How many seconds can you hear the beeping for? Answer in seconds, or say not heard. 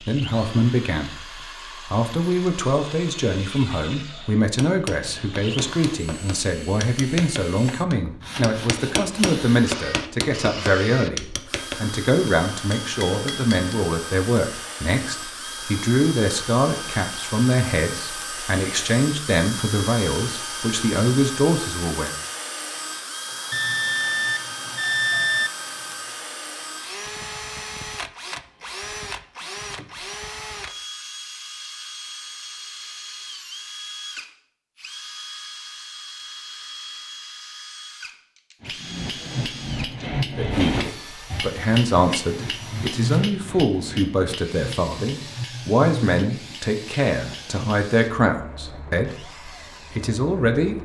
2 s.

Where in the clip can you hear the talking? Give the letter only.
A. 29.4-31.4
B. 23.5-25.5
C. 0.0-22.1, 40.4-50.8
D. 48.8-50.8
C.